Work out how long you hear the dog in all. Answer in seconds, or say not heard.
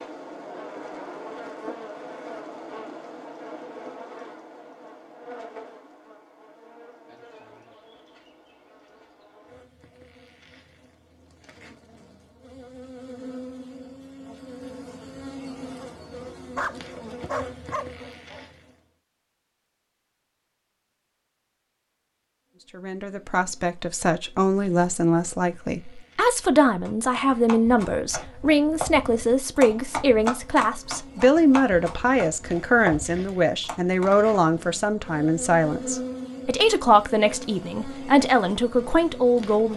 2 s.